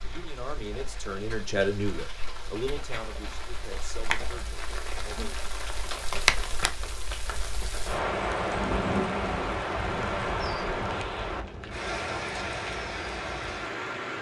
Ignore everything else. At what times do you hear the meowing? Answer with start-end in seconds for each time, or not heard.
not heard.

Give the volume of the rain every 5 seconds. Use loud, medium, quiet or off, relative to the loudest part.
medium, loud, loud.